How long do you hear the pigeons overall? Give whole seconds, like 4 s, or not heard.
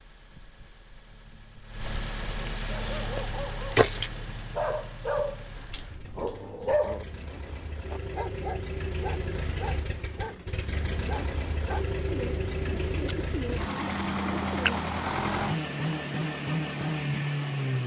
3 s.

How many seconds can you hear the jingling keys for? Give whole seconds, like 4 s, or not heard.
2 s.